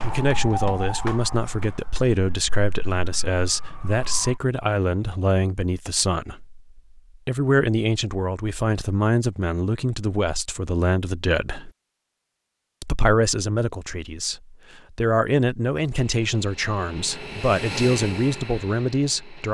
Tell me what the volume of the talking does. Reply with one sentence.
The loudness of the talking stays about the same.